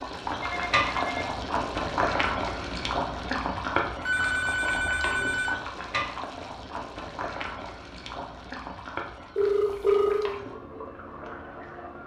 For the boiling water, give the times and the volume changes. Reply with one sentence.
You can hear the boiling water from 0.0 to 12.0 s, getting quieter.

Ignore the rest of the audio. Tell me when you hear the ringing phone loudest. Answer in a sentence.
The loudest moment of the ringing phone is at 10 seconds.